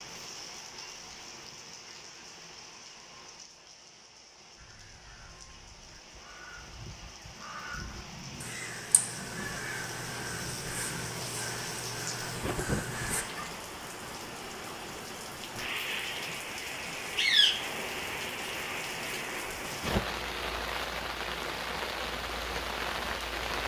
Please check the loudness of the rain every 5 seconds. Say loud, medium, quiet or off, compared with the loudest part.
quiet, quiet, medium, loud, loud.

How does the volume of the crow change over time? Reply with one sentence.
The volume of the crow goes up.